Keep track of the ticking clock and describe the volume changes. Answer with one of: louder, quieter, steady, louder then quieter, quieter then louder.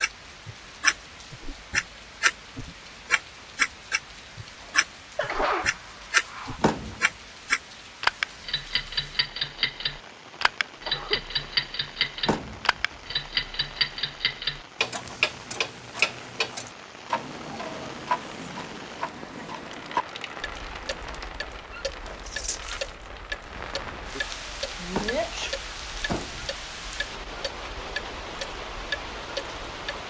quieter.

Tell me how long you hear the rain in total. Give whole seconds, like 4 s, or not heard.
30 s.